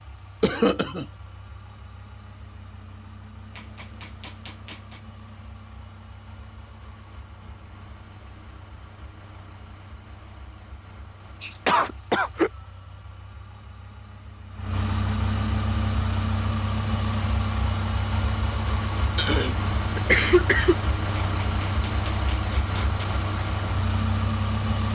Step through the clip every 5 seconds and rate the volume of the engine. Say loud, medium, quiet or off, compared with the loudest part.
quiet, quiet, quiet, loud, loud.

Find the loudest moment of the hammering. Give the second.
23 s.